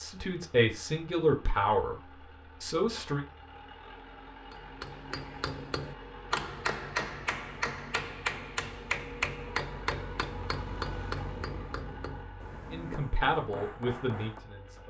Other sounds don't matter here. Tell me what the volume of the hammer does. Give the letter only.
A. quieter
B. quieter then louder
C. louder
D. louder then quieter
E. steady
A.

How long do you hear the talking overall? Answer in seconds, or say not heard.
5 s.